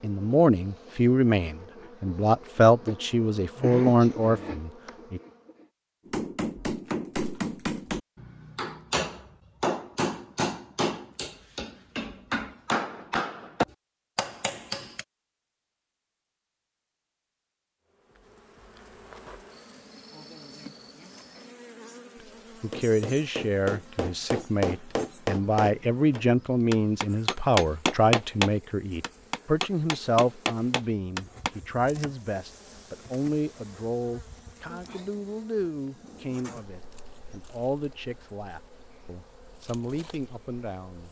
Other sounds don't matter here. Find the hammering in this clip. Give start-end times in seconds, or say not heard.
6.0-15.1, 22.7-31.5.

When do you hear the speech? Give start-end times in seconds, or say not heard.
0.0-5.2, 22.6-41.0.